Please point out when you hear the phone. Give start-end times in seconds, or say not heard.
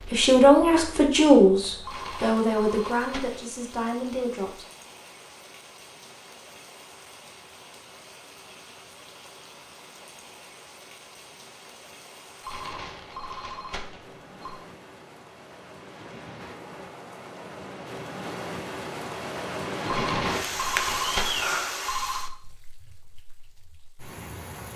1.8-3.5, 12.4-14.6, 19.9-22.3.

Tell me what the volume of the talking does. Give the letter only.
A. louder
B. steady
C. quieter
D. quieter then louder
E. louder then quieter
C.